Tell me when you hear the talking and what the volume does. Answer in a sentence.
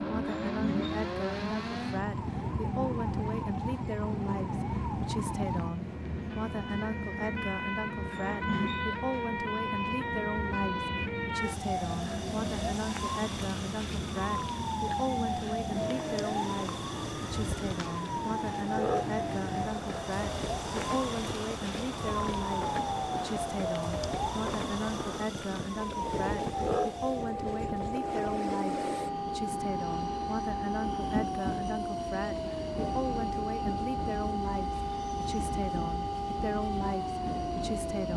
The talking can be heard from 0.0 to 38.1 s, at a steady volume.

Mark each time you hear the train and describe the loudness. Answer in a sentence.
The train can be heard from 0.0 to 38.1 s, at a steady volume.